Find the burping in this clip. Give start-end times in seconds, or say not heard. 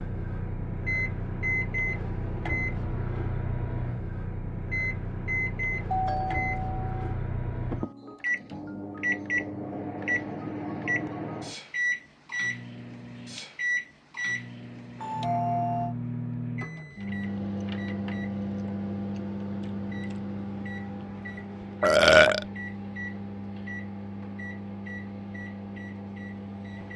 21.8-22.4.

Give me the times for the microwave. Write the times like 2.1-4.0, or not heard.
0.0-26.9.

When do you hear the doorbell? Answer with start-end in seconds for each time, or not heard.
5.9-7.2, 14.9-15.9.